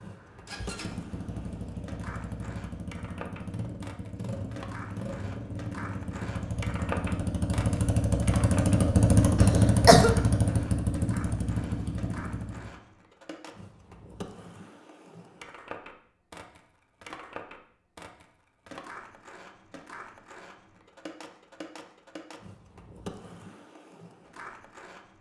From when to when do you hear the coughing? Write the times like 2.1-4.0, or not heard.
9.3-10.1.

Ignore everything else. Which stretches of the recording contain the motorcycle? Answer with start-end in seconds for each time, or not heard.
0.0-12.8.